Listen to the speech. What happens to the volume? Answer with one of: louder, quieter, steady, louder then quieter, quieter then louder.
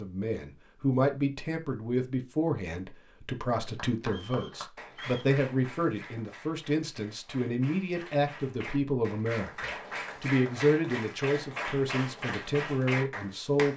steady.